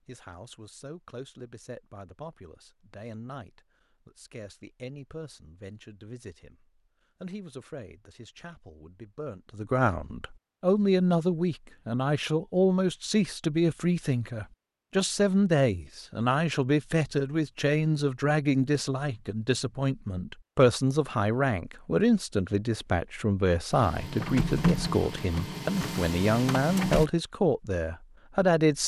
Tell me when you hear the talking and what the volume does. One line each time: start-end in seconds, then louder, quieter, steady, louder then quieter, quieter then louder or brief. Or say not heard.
0.1-28.8 louder.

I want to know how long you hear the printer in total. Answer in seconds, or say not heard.
3 s.